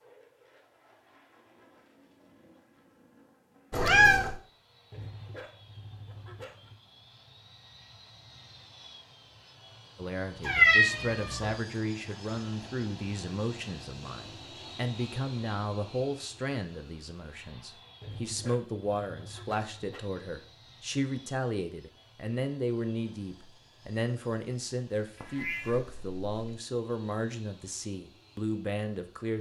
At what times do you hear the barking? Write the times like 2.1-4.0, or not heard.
4.9-6.8, 18.0-20.0.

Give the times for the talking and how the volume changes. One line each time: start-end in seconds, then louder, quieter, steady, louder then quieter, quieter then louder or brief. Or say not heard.
9.9-29.3 steady.